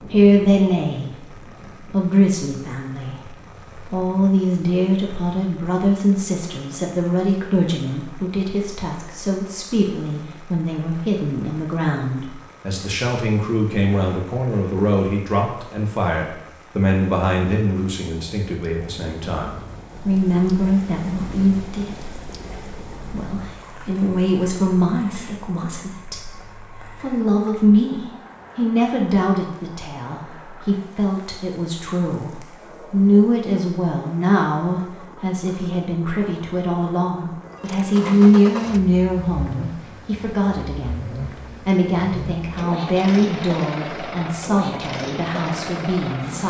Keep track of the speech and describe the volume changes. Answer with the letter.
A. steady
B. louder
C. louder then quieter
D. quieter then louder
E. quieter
A.